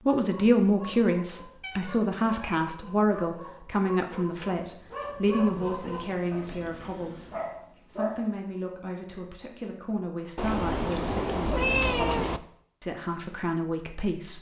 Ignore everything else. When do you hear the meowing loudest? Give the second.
12 s.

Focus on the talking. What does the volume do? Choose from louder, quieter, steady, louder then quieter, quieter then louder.
quieter.